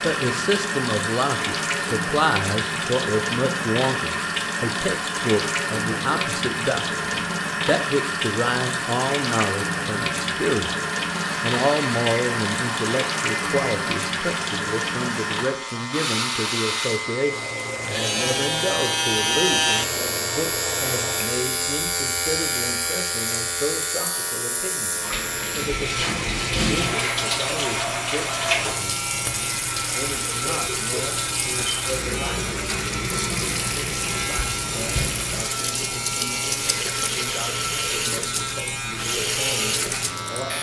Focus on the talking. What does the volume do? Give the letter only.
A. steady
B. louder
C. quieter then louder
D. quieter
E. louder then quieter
D.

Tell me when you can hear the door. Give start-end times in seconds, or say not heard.
not heard.